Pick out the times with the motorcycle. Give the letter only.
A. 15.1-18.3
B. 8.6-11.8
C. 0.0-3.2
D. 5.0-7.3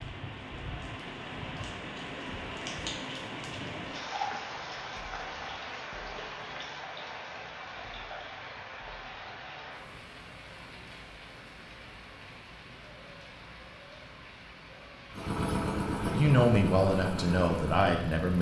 A.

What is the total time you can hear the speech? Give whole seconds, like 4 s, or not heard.
2 s.